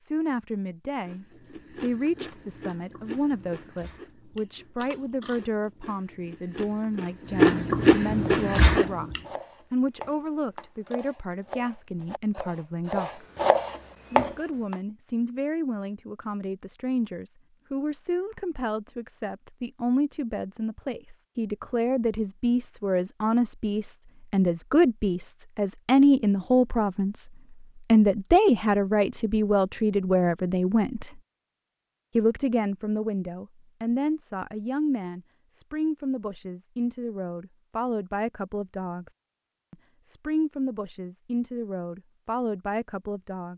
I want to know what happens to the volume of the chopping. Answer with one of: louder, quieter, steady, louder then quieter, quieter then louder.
louder.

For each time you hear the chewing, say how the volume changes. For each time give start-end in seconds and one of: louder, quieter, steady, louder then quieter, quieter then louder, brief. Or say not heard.
1.1-9.2 louder.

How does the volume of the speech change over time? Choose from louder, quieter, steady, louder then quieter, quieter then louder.
louder then quieter.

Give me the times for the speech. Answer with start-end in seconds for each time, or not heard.
0.0-13.2, 14.1-27.2, 27.9-31.2, 32.1-39.1, 39.7-43.5.